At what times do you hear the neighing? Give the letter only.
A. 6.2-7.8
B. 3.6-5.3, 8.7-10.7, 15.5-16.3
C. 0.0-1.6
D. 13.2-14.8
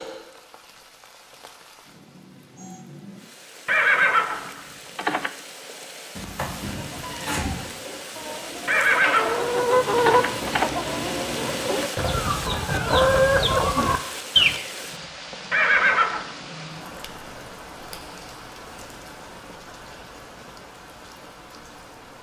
B.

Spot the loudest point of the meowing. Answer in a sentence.
The loudest moment of the meowing is at 7 seconds.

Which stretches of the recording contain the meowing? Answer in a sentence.
The meowing can be heard from 6.2 to 7.8 s.